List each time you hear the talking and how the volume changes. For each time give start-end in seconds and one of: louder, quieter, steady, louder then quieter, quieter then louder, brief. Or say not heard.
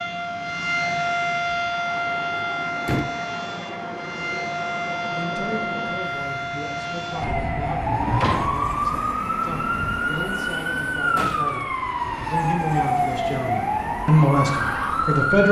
5.1-15.4 louder.